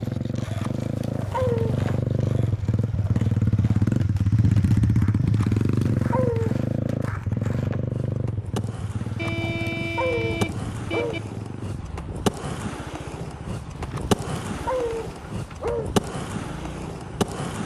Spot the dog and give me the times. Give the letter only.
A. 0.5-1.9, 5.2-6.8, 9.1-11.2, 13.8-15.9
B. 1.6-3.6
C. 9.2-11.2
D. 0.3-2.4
A.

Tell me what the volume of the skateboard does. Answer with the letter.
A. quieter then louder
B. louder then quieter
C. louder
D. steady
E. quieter
C.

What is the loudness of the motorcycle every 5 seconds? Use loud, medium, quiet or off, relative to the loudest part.
loud, loud, quiet, quiet.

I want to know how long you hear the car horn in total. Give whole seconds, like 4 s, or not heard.
2 s.